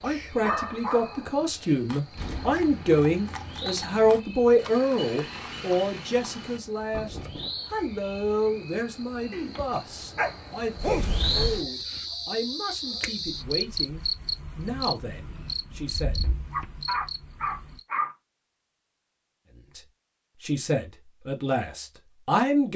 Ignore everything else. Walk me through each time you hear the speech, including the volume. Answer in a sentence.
The speech can be heard from 0.0 to 16.2 s, getting quieter; and briefly from 20.4 to 22.7 s.